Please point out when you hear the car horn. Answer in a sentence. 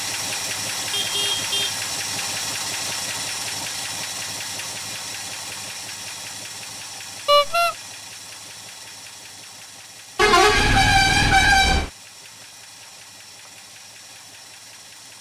You can hear the car horn from 0.9 to 1.8 s, from 7.2 to 7.8 s and from 10.2 to 11.9 s.